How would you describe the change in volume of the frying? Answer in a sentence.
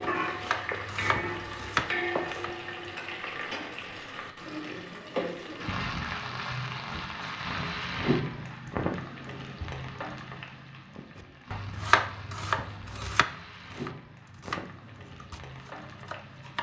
The volume of the frying goes down.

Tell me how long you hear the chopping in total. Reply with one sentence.
The chopping can be heard for 8 seconds in total.